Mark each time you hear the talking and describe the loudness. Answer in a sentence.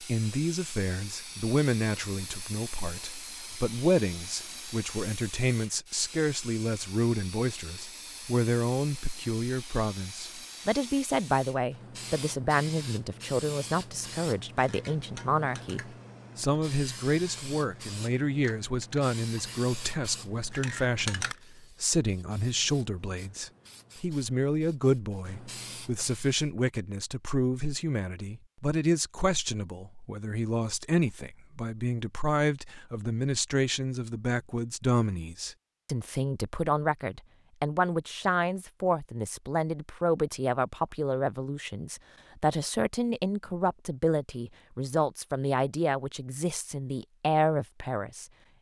You can hear the talking from 0.0 to 48.2 s, at a steady volume.